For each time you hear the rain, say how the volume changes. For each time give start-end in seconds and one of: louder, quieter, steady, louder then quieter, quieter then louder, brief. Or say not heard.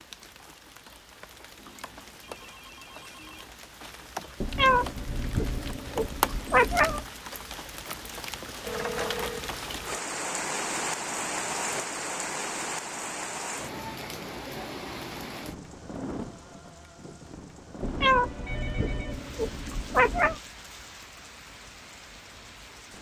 0.0-22.9 louder then quieter.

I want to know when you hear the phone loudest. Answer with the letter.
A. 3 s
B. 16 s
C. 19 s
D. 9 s
D.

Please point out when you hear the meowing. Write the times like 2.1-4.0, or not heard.
4.4-7.0, 17.8-20.4.